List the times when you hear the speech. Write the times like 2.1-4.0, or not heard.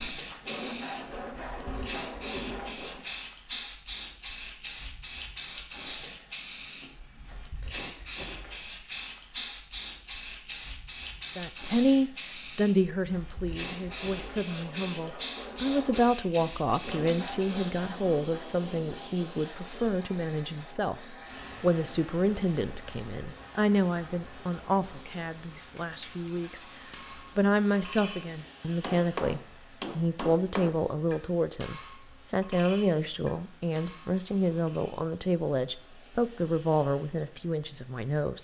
11.3-38.3.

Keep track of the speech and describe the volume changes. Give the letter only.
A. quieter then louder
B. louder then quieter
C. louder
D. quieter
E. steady
E.